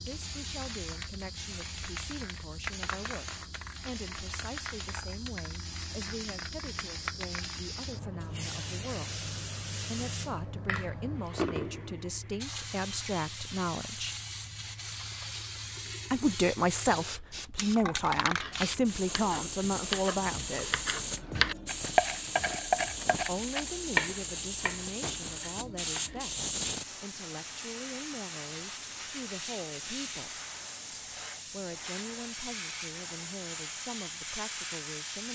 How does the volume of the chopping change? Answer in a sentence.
The volume of the chopping goes up, then down.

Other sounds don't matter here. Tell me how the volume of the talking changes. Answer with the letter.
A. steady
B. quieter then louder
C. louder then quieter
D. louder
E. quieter
C.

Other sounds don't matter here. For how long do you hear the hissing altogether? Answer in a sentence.
You can hear the hissing for 35 seconds altogether.